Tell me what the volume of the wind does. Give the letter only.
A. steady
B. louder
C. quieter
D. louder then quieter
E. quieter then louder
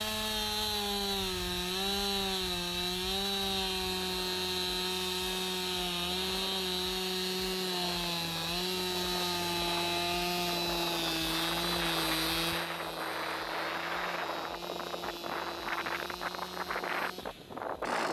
B.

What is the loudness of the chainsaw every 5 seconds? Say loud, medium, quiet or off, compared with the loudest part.
loud, loud, loud, medium.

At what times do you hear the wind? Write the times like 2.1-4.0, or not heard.
0.0-18.0.